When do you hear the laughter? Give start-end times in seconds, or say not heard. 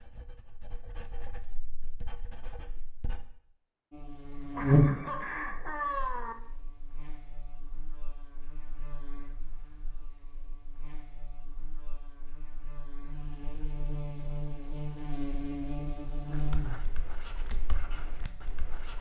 4.5-6.3.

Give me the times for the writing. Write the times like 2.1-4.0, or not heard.
0.0-3.2, 16.3-18.9.